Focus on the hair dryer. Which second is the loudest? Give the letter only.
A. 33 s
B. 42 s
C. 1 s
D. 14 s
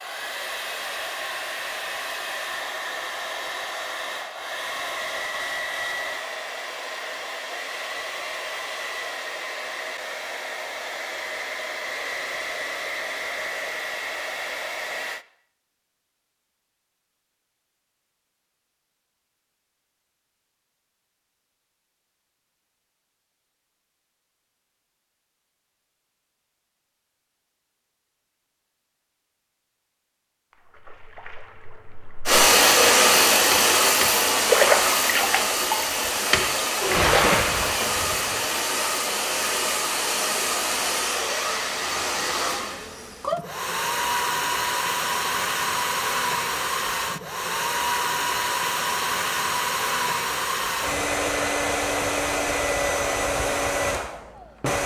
A.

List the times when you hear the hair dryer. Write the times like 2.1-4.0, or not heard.
0.0-15.2, 32.2-54.8.